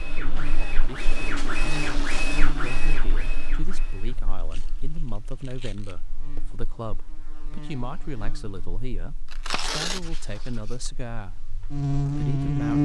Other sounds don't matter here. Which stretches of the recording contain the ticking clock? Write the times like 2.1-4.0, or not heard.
not heard.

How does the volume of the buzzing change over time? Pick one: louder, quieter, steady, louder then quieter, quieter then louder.
quieter then louder.